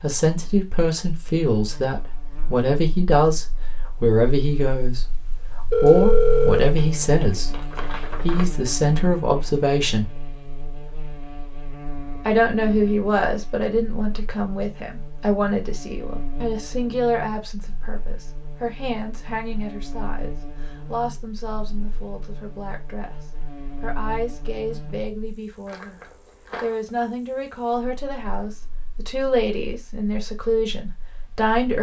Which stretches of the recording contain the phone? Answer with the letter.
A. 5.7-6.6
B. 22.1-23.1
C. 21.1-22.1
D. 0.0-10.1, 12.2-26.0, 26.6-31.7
A.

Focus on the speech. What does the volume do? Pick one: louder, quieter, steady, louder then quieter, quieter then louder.
quieter then louder.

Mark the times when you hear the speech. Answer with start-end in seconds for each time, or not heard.
0.0-10.1, 12.2-26.0, 26.6-31.7.